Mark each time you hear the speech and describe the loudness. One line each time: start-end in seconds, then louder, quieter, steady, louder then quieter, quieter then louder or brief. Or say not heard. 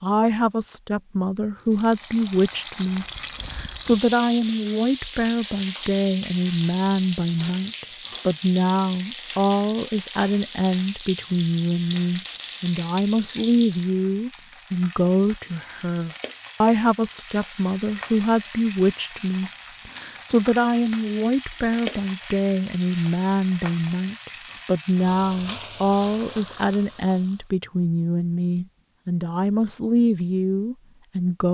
0.0-31.4 steady.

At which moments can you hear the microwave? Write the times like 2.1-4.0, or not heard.
not heard.